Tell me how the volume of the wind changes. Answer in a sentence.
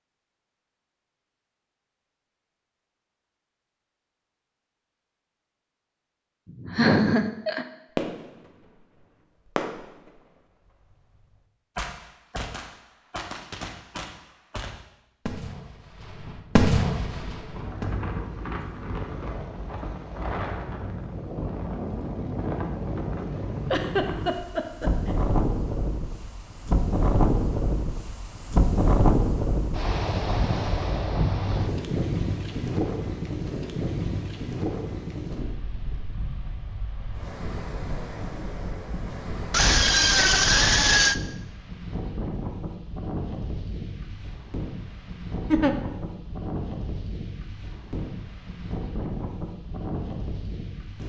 The volume of the wind goes up, then down.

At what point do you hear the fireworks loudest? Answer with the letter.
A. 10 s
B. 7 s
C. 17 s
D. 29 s
C.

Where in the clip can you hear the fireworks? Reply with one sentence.
The fireworks can be heard from 8.0 to 8.8 s, from 9.4 to 10.2 s and from 10.9 to 17.9 s.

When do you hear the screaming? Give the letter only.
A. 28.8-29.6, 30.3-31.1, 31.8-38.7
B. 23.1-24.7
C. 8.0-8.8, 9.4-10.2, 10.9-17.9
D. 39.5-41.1
D.